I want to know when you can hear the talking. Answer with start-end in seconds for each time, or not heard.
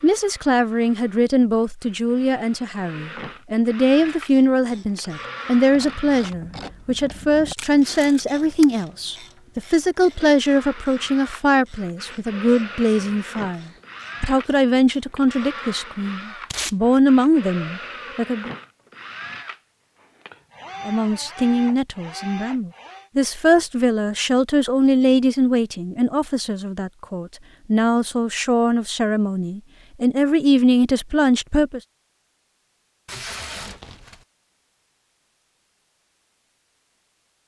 0.0-18.5, 20.9-31.8.